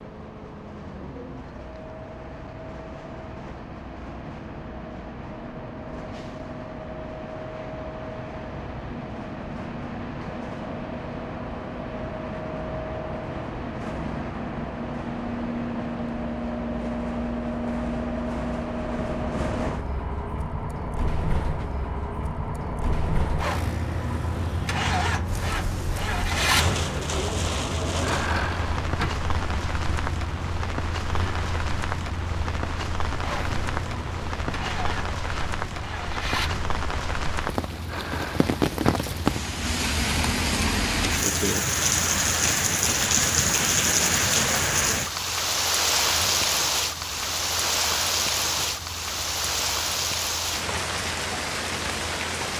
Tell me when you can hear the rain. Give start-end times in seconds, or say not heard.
25.2-52.5.